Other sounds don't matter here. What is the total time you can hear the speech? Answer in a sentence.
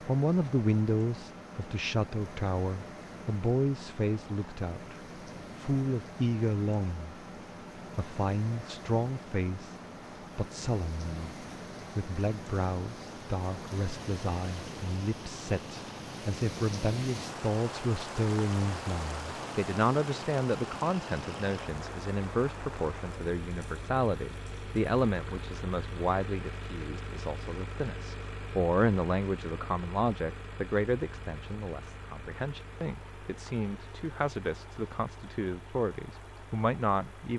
The speech can be heard for 36 seconds in total.